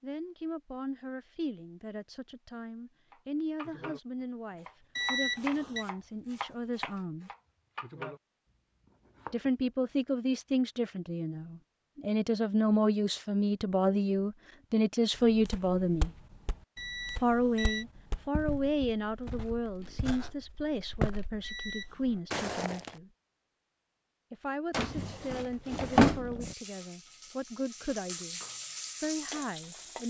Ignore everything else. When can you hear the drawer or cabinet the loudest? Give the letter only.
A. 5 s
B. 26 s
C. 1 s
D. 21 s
B.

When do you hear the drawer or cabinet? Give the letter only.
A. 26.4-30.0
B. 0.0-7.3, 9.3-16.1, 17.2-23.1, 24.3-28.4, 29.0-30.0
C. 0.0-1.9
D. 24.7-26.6
D.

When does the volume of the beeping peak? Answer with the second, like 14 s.
5 s.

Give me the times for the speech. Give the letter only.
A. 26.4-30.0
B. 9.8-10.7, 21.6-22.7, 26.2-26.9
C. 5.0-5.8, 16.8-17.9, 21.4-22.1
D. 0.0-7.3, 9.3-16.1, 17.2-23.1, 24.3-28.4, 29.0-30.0
D.